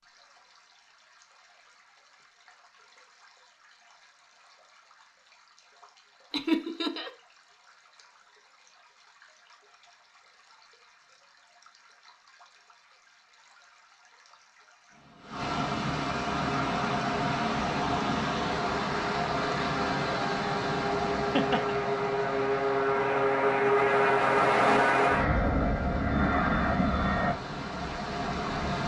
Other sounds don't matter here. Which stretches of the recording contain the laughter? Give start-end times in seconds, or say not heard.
6.3-7.1, 21.0-21.8.